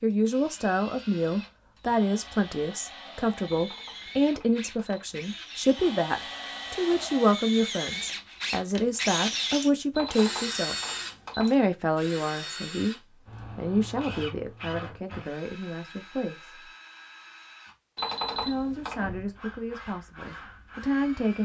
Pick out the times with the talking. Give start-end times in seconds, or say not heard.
0.0-10.8, 11.3-12.9, 13.6-16.7, 18.4-21.4.